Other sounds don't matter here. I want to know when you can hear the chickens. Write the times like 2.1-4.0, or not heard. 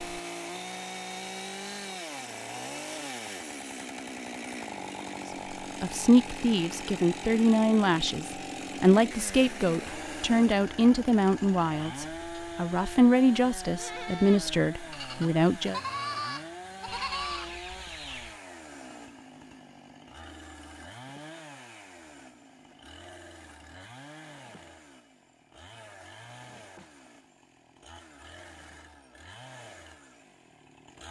16.9-18.4.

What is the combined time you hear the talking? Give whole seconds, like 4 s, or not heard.
10 s.